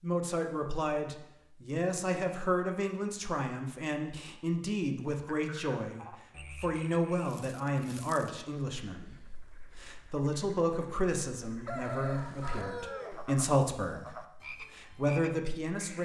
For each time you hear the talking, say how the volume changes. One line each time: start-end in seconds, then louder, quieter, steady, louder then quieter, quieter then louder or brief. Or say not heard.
0.0-15.9 steady.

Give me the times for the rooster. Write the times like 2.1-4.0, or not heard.
11.7-13.2.